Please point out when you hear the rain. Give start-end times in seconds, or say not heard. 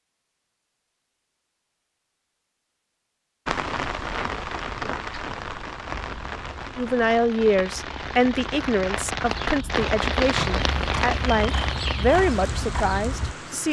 3.5-13.6.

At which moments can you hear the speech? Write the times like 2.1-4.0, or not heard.
6.8-13.6.